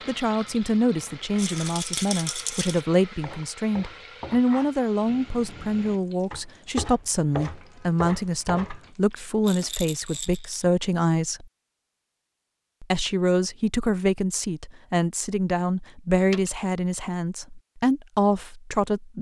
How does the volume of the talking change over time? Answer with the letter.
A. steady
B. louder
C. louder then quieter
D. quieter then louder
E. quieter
A.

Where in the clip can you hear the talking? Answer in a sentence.
The talking can be heard from 0.1 to 11.4 s and from 12.8 to 19.1 s.